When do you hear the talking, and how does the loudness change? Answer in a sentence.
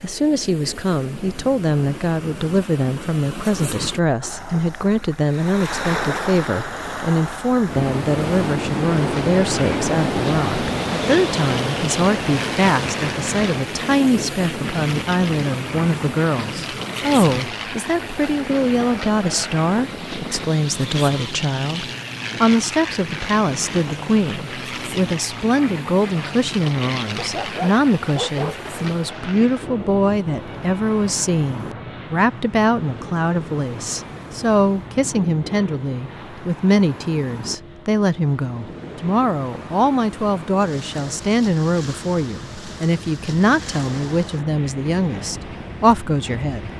You can hear the talking from 0.0 to 46.7 s, at a steady volume.